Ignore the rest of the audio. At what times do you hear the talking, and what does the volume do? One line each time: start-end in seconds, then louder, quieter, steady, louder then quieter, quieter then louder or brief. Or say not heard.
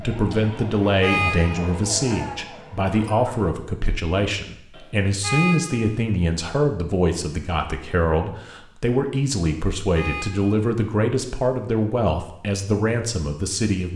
0.0-13.9 steady.